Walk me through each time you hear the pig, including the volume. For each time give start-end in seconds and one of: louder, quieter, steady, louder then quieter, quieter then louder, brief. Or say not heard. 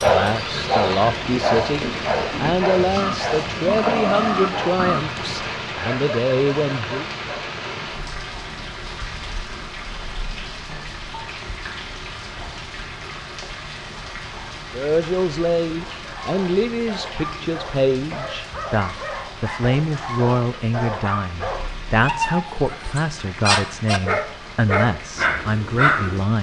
0.0-5.3 louder.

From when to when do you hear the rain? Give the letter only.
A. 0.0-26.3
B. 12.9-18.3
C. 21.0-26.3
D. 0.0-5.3
A.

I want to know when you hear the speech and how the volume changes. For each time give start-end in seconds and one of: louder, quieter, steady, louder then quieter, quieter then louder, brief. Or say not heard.
0.0-7.0 steady
14.7-26.3 steady.